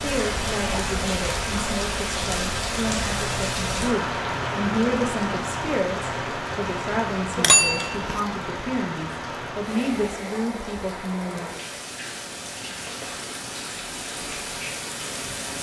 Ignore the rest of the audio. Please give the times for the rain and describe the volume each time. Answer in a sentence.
You can hear the rain from 0.0 to 15.5 s, getting quieter.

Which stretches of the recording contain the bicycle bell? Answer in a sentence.
The bicycle bell can be heard from 7.3 to 8.2 s.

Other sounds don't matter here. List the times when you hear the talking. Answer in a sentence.
The talking can be heard from 0.0 to 11.6 s.